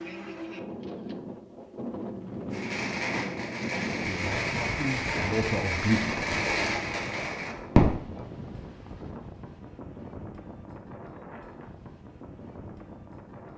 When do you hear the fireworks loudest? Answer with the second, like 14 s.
8 s.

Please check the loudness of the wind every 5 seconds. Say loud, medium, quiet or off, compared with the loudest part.
loud, loud, medium.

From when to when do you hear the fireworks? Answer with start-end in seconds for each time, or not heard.
2.5-8.1.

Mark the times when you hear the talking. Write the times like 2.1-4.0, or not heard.
4.0-6.8.